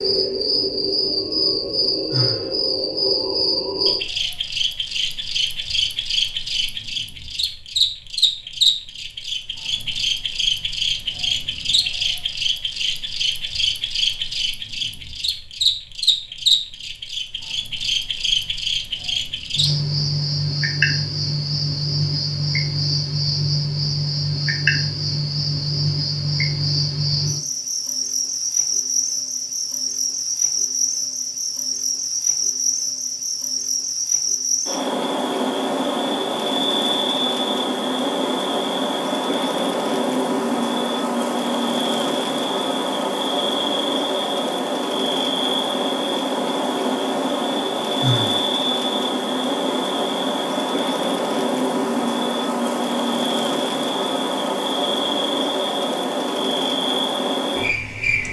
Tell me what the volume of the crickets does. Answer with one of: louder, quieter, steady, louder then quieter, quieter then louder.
steady.